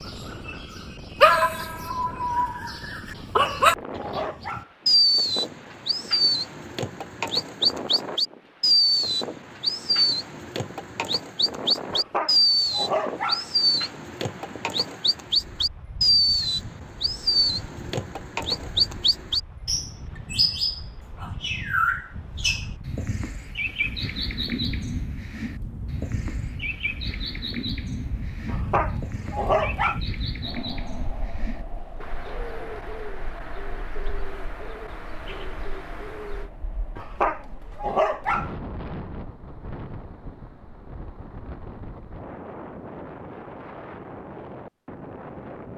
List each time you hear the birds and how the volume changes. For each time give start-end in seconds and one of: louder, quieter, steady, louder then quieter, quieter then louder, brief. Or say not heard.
0.0-36.5 quieter.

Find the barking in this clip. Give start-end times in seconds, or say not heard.
3.1-4.7, 11.9-13.4, 28.4-30.0, 37.0-38.5.